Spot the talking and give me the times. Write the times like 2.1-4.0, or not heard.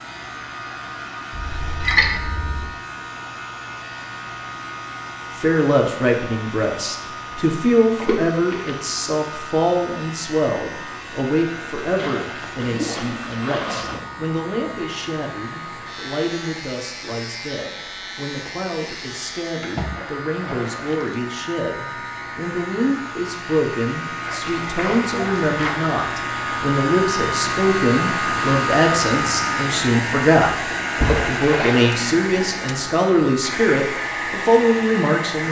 5.3-35.4.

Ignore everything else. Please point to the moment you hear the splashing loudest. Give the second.
2 s.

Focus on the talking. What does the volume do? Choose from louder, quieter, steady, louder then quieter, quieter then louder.
quieter then louder.